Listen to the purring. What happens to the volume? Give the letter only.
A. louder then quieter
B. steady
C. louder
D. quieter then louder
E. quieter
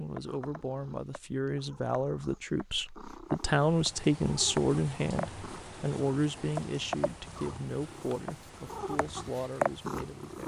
C.